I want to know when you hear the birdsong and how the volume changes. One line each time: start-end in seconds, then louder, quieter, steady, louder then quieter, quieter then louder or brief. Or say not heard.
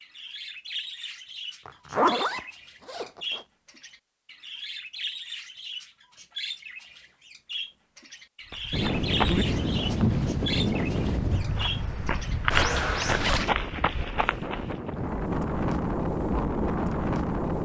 0.0-13.4 louder.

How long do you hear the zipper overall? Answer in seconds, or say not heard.
3 s.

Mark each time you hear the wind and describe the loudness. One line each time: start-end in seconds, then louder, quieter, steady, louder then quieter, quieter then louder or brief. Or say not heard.
8.7-17.5 quieter then louder.